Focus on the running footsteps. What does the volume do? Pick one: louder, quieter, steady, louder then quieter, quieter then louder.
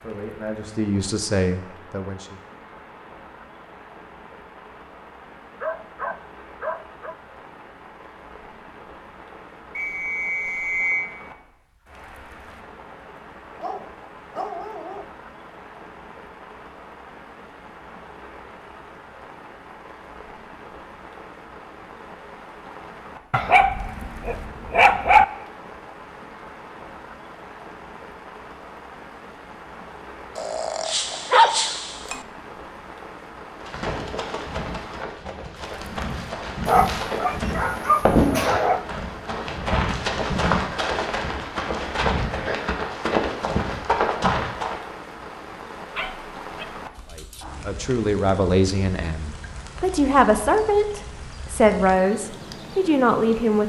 louder.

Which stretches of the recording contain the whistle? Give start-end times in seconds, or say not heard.
9.8-11.1.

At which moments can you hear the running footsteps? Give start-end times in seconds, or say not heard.
33.5-44.8.